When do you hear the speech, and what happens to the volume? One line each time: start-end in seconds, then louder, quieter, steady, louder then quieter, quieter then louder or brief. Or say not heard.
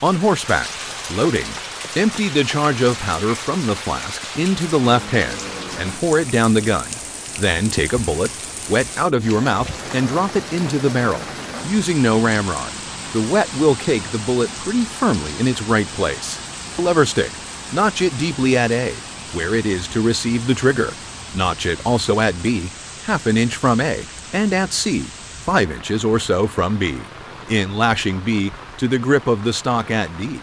0.0-30.3 steady.